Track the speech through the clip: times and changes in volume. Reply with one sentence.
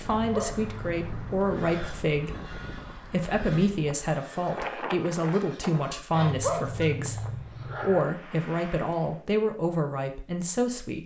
The speech can be heard from 0.0 to 11.0 s, at a steady volume.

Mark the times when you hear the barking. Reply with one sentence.
You can hear the barking from 0.0 to 2.0 s and from 6.2 to 8.1 s.